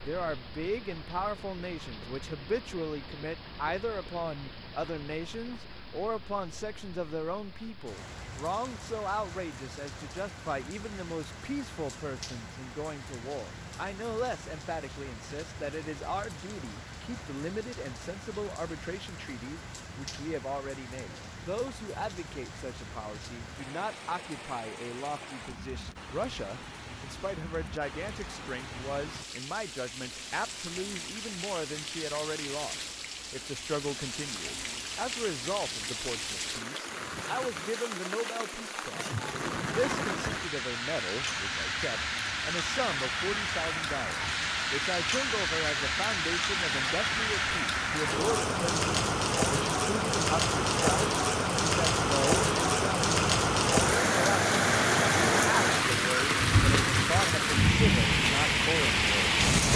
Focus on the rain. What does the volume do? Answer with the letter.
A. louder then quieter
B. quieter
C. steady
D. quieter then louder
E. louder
E.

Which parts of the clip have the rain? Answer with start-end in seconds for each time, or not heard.
0.0-59.7.